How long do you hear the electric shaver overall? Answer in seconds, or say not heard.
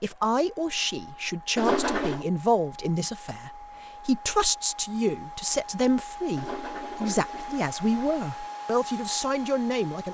not heard.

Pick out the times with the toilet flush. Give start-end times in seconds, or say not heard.
1.6-2.2, 6.3-8.2.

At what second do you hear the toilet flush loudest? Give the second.
2 s.